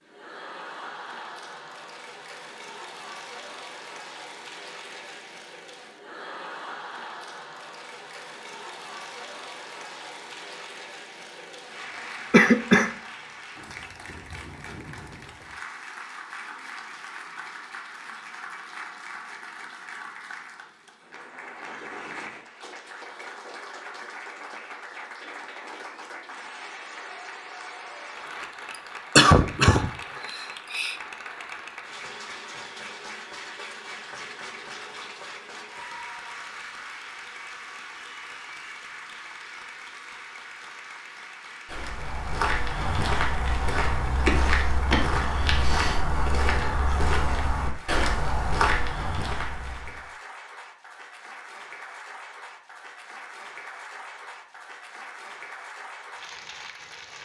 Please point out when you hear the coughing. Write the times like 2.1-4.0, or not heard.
12.3-12.9, 29.1-30.9.